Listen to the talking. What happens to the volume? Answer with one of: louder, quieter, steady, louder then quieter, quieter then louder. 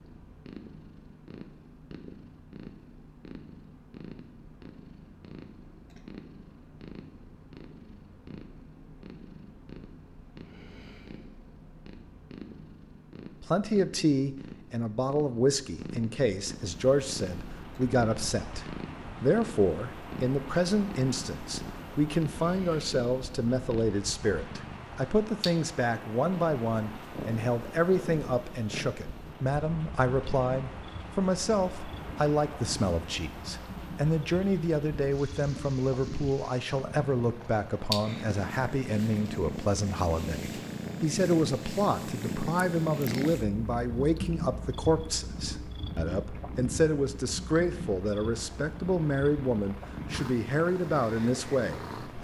steady.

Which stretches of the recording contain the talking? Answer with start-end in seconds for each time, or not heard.
13.4-52.1.